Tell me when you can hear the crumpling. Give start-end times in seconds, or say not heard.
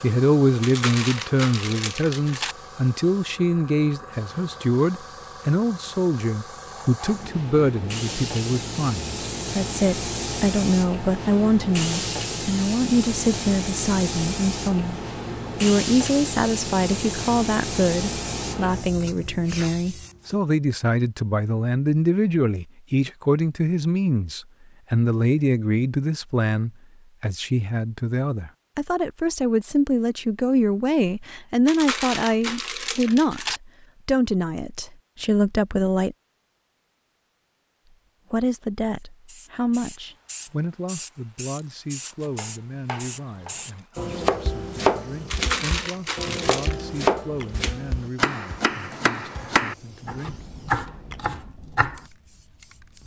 0.6-2.5, 31.6-33.6, 45.3-46.9.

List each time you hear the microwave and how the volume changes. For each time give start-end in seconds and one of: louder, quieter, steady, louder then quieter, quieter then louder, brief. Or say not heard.
not heard.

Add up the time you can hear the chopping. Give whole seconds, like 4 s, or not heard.
10 s.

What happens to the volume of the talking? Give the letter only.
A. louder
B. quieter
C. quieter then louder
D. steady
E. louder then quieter
B.